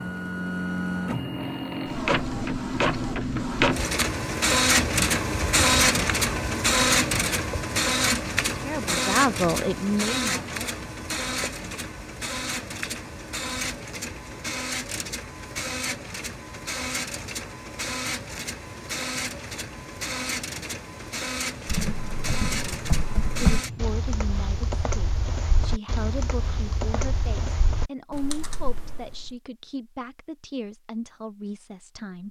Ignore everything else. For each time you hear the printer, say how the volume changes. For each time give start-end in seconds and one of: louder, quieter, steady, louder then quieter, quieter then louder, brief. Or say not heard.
0.0-23.9 quieter.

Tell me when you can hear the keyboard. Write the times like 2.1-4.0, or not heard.
21.6-29.3.